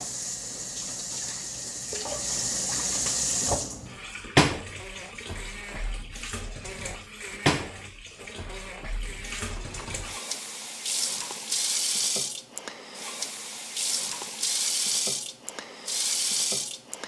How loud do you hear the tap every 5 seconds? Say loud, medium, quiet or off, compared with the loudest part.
loud, medium, loud, loud.